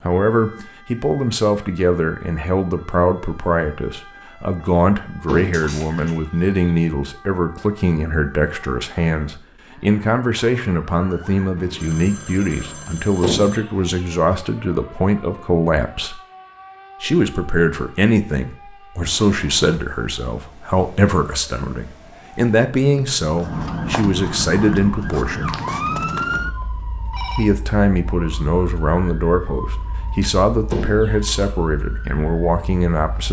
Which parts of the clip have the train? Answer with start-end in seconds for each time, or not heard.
not heard.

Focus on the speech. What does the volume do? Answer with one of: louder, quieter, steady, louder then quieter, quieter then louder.
steady.